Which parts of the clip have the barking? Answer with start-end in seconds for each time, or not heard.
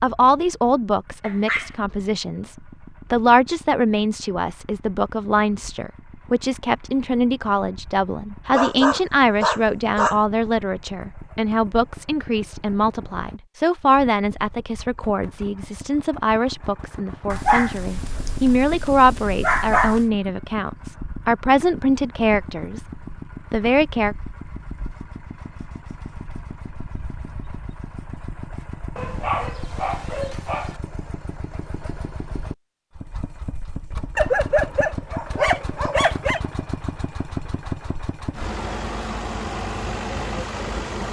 1.2-1.8, 8.5-10.2, 17.3-20.1, 28.9-30.8, 34.1-36.4.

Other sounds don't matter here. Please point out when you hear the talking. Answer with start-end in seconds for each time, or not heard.
0.0-22.9, 23.5-24.1.